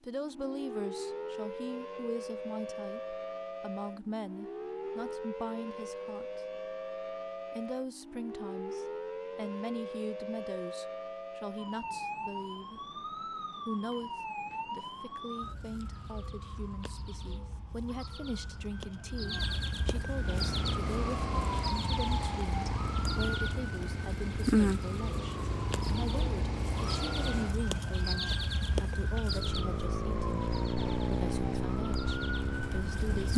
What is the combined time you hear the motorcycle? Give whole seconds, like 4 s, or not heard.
13 s.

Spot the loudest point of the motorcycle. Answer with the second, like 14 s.
31 s.